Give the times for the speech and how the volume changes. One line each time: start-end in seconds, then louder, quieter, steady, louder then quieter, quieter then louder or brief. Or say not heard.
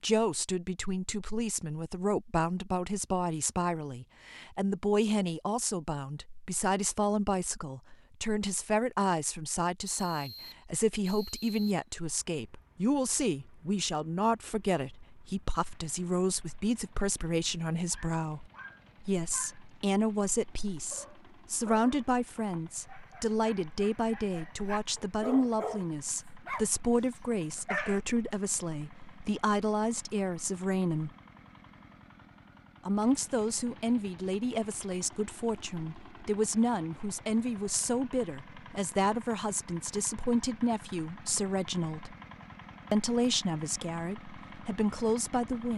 0.0-31.1 steady
32.9-42.1 steady
42.9-45.7 brief.